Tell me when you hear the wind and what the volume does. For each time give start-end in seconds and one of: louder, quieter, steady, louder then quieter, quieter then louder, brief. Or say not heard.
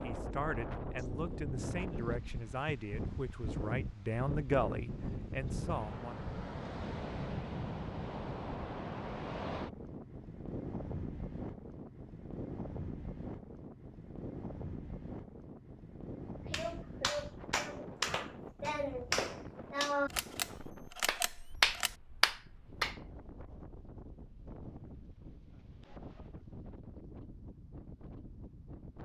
0.0-28.9 quieter.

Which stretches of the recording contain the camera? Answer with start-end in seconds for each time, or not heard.
20.1-21.9.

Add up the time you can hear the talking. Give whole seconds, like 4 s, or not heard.
6 s.